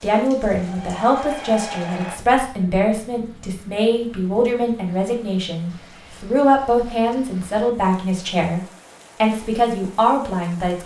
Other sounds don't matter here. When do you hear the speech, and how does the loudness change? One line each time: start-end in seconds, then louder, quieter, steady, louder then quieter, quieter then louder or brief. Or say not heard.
0.0-8.6 steady
9.2-10.8 brief.